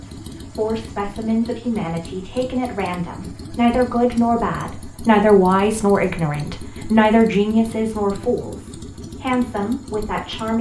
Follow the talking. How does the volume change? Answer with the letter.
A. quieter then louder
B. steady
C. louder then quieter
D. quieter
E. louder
C.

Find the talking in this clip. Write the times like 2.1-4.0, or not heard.
0.0-10.5.